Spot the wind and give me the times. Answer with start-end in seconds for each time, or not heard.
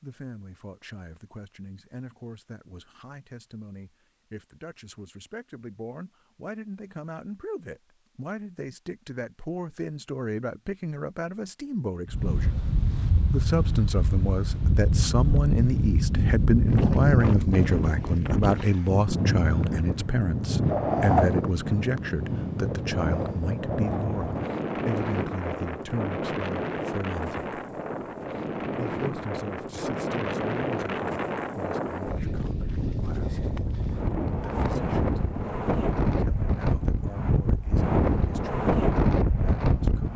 12.1-40.1.